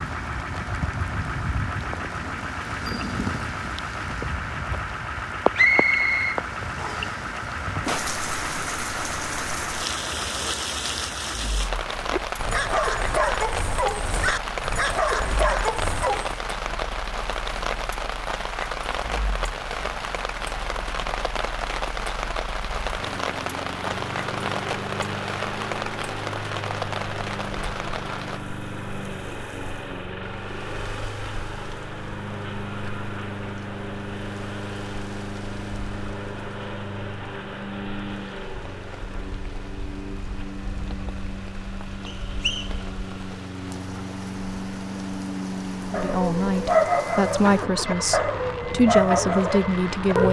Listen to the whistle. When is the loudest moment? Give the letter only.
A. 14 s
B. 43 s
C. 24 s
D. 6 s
D.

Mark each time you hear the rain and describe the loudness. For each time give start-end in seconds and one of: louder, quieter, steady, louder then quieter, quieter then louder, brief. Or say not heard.
0.0-50.2 quieter then louder.